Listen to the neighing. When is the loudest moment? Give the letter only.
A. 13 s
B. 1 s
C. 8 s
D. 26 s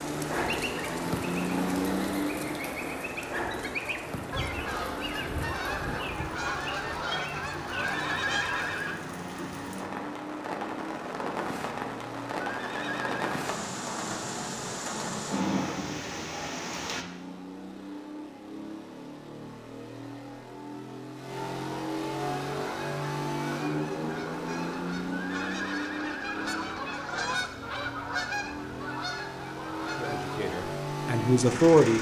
C.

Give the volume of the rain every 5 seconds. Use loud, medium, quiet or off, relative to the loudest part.
loud, medium, loud, loud, off, off, off.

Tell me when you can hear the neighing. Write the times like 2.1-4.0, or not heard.
7.8-9.0, 12.4-13.3, 25.1-26.9.